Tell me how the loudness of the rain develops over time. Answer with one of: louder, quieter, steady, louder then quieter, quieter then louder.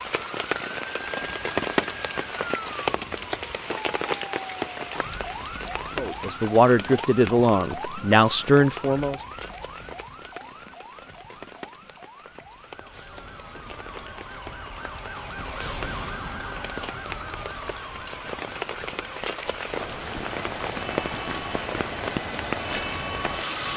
quieter then louder.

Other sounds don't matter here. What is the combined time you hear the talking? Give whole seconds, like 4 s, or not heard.
3 s.